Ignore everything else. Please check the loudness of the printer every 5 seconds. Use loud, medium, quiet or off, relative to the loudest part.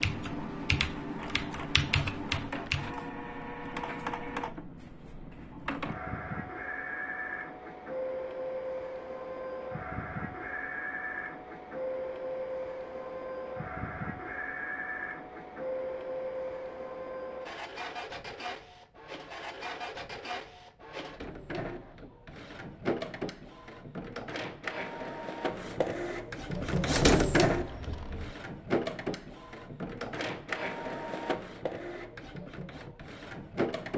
medium, medium, medium, medium, medium, loud, medium.